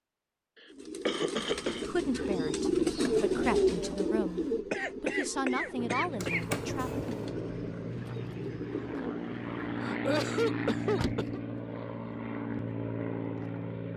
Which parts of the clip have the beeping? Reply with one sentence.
You can hear the beeping from 6.2 to 7.3 s.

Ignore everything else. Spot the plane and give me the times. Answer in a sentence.
The plane can be heard from 5.8 to 13.9 s.